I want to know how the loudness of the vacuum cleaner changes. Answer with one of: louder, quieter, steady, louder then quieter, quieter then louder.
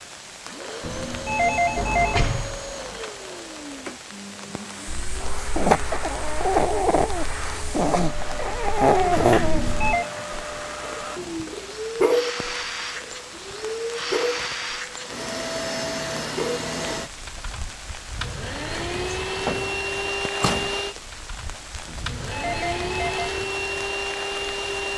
louder.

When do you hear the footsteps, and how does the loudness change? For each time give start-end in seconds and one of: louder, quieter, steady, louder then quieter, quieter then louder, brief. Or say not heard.
not heard.